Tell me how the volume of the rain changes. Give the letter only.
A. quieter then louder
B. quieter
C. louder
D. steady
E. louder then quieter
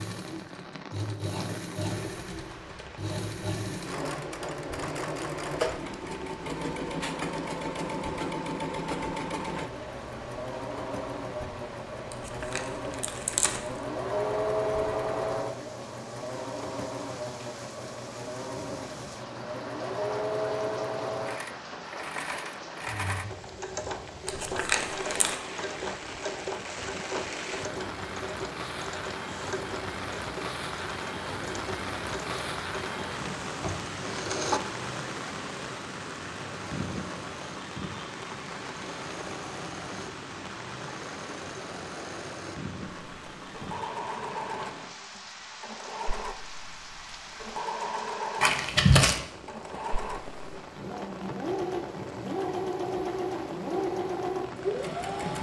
E.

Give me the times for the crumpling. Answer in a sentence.
The crumpling can be heard from 12.1 to 13.6 s, from 24.2 to 25.4 s and from 48.4 to 49.2 s.